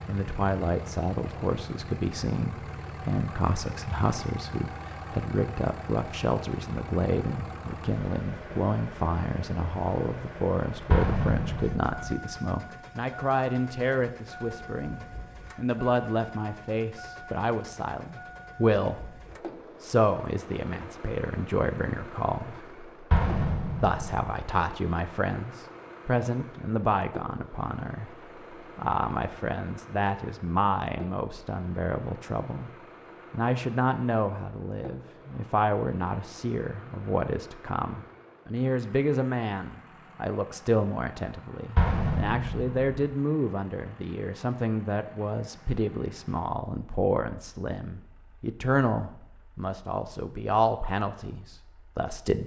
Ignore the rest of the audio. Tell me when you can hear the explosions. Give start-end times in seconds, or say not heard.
10.9-12.2, 23.1-24.2, 41.8-42.8.